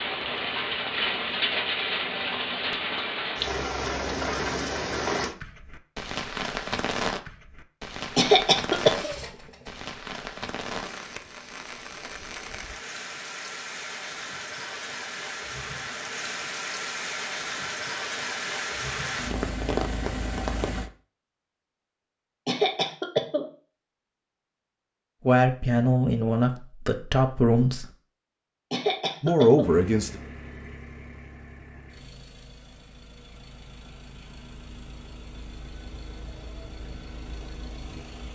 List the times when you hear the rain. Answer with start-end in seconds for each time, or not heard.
0.0-20.9.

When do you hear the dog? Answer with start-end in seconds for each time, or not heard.
not heard.